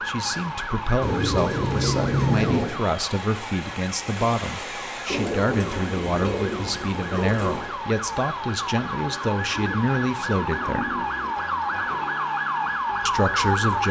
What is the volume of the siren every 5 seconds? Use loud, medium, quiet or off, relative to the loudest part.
medium, medium, loud.